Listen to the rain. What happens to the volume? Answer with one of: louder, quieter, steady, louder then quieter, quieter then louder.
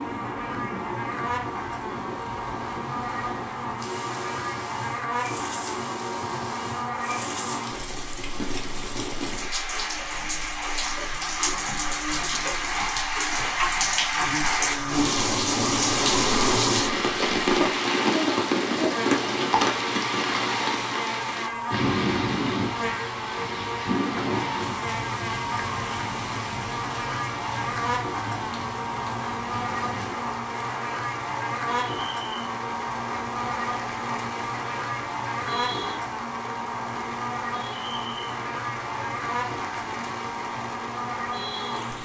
louder then quieter.